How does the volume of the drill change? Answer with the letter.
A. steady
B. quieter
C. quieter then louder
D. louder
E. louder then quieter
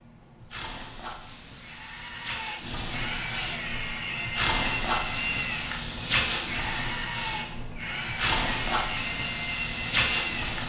A.